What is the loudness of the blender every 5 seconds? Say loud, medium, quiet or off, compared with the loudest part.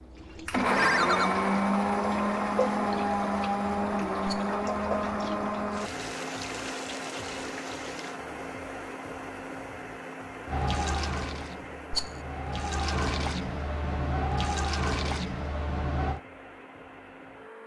loud, medium, quiet, quiet.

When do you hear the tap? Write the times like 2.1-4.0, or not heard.
0.0-8.2, 10.4-16.2.